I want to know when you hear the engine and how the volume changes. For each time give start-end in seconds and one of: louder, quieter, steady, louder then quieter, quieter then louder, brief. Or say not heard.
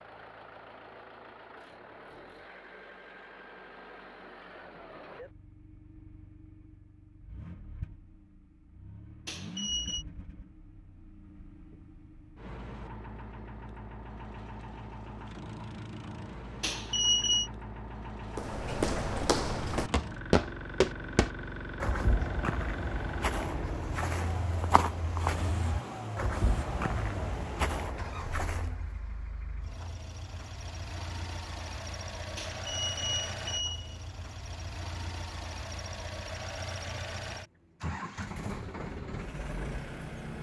0.0-40.3 louder.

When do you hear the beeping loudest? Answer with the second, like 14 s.
17 s.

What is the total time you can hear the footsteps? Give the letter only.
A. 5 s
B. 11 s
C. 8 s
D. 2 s
B.